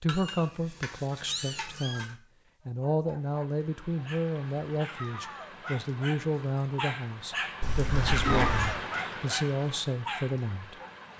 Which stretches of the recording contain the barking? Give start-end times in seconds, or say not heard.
2.6-10.9.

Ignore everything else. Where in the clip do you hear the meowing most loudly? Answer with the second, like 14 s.
8 s.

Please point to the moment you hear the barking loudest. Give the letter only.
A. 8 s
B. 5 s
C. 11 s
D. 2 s
A.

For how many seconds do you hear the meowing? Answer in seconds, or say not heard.
3 s.